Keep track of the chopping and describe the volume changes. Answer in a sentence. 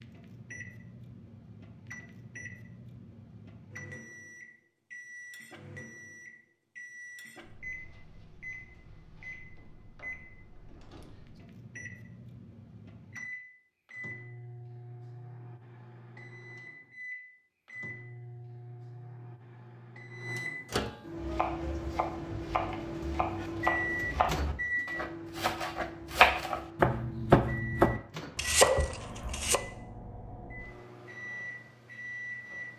The loudness of the chopping goes up.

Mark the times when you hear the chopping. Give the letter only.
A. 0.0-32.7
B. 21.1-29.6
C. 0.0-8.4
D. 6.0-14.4
B.